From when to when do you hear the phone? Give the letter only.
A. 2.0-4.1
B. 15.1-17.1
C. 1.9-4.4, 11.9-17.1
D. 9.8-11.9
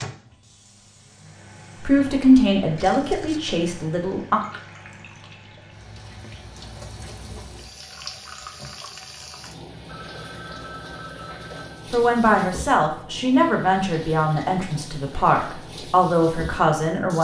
D.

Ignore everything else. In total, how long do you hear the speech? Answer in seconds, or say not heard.
8 s.